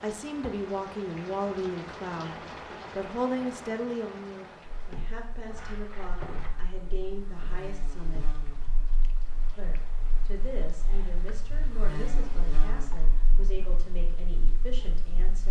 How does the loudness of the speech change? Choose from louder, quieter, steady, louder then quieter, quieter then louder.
quieter.